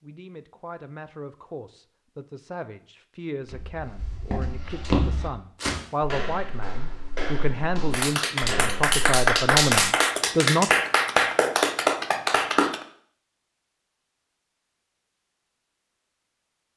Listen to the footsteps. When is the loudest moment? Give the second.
5 s.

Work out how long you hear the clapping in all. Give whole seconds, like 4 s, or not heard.
5 s.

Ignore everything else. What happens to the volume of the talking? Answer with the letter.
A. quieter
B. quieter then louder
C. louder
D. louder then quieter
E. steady
C.